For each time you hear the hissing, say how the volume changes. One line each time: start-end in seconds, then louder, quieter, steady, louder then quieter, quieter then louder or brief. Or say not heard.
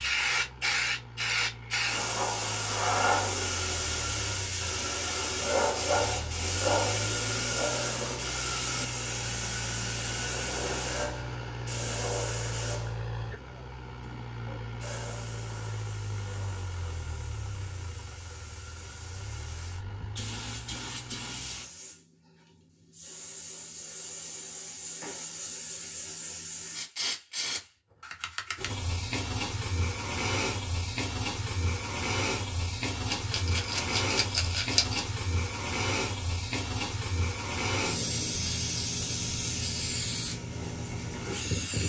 0.0-41.8 quieter then louder.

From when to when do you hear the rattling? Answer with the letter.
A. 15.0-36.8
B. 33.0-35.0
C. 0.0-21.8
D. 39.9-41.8
B.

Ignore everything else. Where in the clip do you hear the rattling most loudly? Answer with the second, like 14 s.
35 s.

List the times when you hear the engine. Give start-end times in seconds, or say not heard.
0.0-21.8.